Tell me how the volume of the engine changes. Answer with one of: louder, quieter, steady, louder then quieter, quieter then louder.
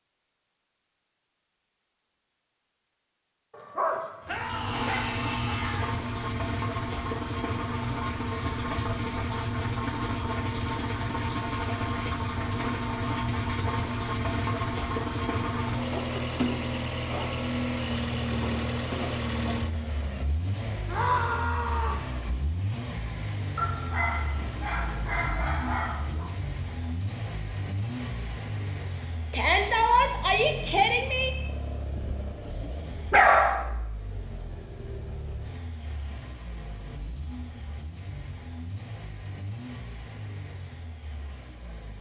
quieter.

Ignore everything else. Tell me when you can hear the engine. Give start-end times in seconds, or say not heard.
4.2-41.9.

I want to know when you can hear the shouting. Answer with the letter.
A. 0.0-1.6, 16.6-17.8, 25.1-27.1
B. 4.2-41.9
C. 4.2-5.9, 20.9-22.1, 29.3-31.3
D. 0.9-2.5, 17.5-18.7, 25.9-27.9
C.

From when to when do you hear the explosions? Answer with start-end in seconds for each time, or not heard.
not heard.